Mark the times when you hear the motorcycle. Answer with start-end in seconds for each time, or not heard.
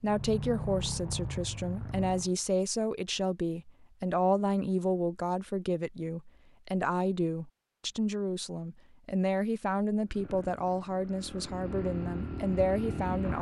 0.0-2.4, 10.1-13.3.